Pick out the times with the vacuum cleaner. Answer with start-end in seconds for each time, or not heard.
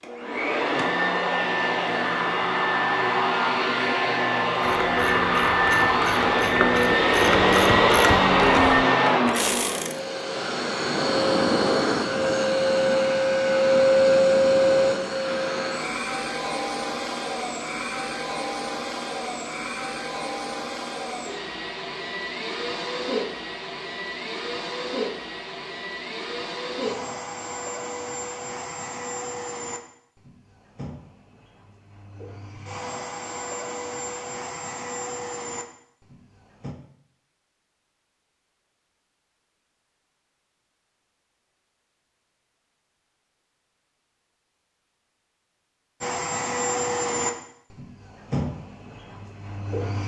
0.0-36.8, 46.0-50.0.